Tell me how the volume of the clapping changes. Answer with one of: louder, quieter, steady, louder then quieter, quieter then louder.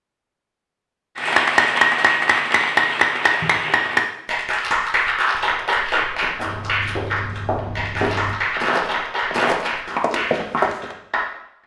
quieter.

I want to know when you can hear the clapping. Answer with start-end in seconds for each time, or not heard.
1.1-11.2.